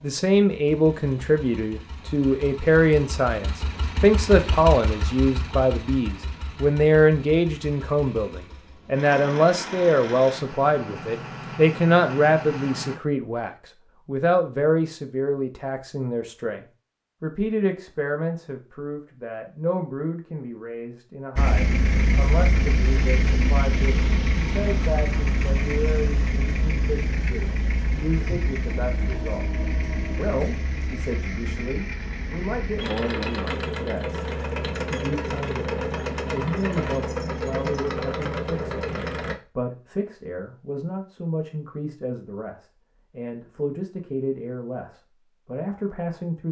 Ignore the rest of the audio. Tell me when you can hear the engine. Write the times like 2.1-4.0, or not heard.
0.0-13.0, 21.4-39.4.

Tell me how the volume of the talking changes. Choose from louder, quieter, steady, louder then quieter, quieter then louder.
quieter.